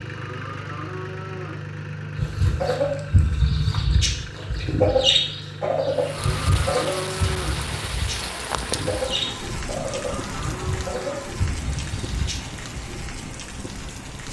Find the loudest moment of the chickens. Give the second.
5 s.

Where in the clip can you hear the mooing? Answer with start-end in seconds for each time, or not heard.
0.1-1.6, 6.1-7.6, 9.8-11.3.